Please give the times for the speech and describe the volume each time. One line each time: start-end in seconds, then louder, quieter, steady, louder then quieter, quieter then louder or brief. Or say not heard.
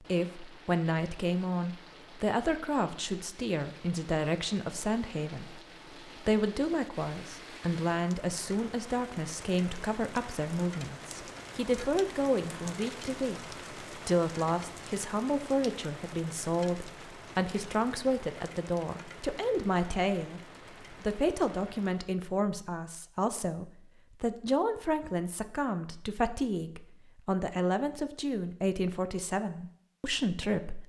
0.0-30.8 steady.